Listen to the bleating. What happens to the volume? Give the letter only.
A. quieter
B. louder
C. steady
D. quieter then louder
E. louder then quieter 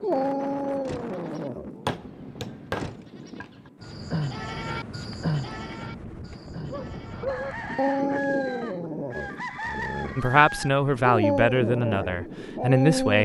E.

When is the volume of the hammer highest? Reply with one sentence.
The volume of the hammer peaks at 2 seconds.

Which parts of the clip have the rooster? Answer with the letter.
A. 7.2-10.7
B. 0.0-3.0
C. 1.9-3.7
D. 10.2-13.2
A.